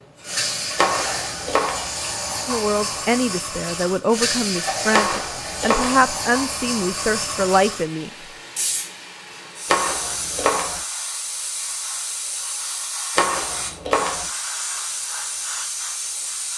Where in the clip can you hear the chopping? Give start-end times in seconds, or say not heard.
0.8-1.9, 4.9-6.0, 9.7-10.8, 13.2-14.3.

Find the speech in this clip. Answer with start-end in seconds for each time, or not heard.
2.5-8.1.